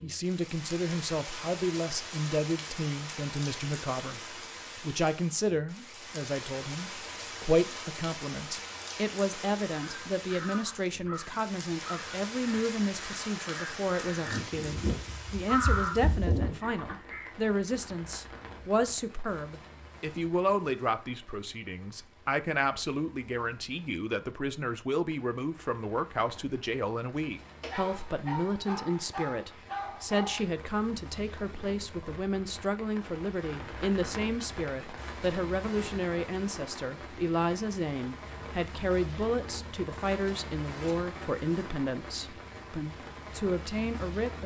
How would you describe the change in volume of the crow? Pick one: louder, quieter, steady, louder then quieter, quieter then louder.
louder.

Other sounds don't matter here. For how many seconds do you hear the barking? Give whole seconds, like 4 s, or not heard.
3 s.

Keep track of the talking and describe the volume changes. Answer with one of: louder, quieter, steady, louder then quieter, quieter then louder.
steady.